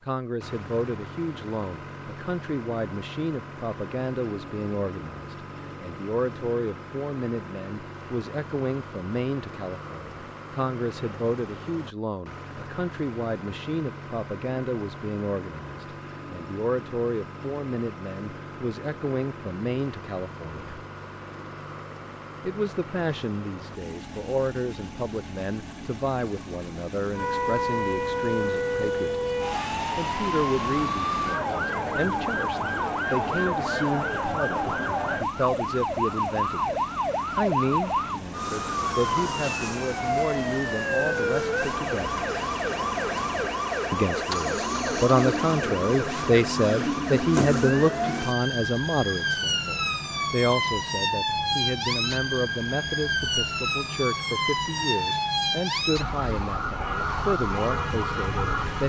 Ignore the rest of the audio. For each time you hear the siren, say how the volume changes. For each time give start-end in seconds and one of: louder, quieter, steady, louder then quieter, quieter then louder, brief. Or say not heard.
27.1-58.8 steady.